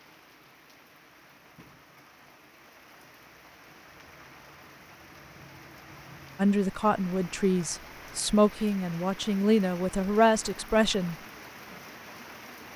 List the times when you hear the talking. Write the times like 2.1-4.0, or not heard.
6.3-11.2.